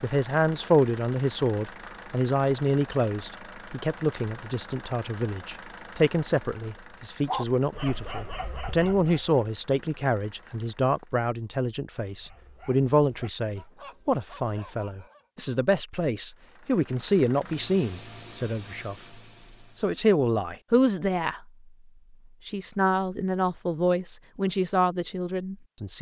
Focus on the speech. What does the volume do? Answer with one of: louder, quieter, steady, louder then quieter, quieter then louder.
steady.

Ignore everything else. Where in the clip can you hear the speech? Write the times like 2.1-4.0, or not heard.
0.0-21.4, 22.4-25.9.